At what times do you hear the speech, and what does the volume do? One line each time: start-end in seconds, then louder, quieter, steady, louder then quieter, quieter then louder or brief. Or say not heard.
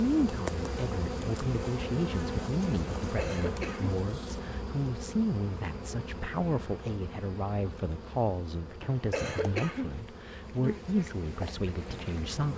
0.0-12.5 steady.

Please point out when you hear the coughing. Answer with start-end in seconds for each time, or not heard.
3.0-4.0, 8.8-10.0.